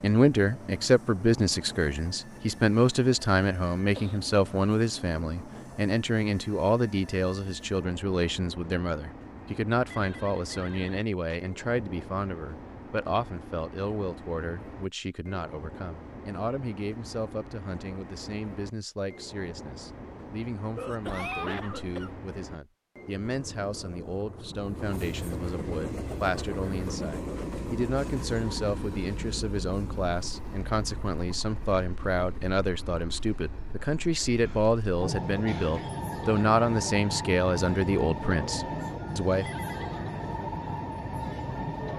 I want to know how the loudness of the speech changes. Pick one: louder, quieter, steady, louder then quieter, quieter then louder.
quieter then louder.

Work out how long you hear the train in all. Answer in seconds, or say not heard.
42 s.